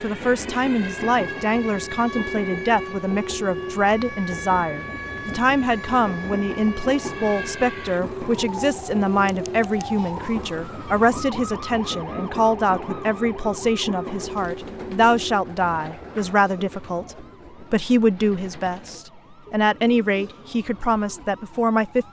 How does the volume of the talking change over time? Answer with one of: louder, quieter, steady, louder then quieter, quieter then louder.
steady.